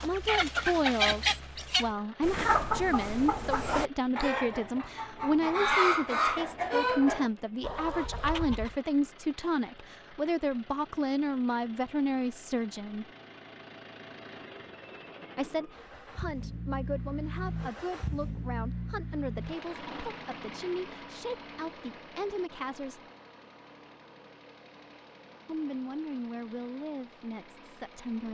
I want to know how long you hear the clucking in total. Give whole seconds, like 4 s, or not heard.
9 s.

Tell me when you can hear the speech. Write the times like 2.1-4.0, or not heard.
0.0-13.1, 15.3-23.0, 25.4-28.2.